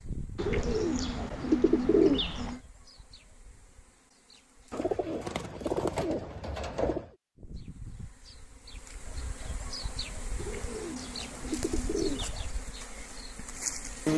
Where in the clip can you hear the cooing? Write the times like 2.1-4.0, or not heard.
0.3-2.6, 4.7-7.1, 10.3-12.3.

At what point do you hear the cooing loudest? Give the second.
2 s.